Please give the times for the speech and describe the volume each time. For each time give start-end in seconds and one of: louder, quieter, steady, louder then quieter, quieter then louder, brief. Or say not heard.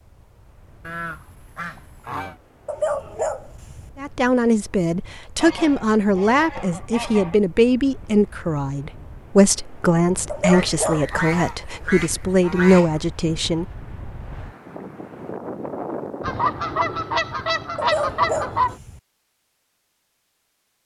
4.0-13.7 steady.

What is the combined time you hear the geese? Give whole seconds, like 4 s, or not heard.
9 s.